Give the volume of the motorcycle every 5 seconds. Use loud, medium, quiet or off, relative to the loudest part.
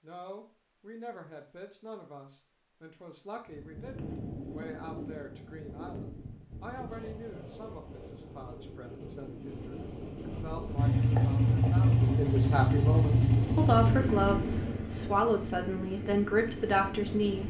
off, off, loud, quiet.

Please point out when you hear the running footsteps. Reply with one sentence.
You can't hear the running footsteps here.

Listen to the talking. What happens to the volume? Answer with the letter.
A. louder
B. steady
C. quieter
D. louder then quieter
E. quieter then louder
A.